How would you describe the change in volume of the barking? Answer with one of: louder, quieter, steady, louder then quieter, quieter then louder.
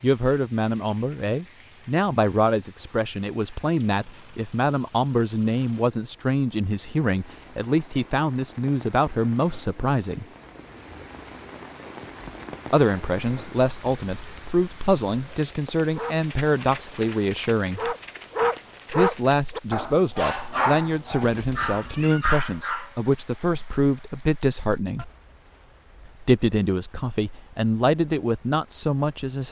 louder.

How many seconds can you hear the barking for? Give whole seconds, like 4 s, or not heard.
7 s.